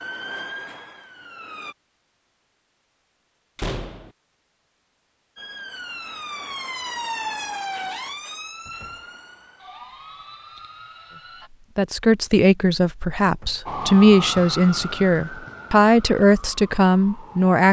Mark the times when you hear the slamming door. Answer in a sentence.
You can hear the slamming door from 3.5 to 4.1 s, from 8.7 to 9.1 s and from 13.2 to 13.7 s.